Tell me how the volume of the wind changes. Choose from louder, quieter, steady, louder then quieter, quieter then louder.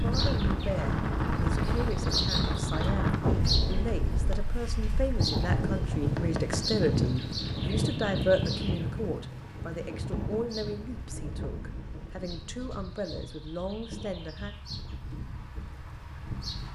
quieter.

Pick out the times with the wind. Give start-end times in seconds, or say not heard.
0.0-16.6.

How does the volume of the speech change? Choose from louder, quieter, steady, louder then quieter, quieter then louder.
louder then quieter.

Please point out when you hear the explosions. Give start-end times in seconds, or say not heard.
3.2-4.5.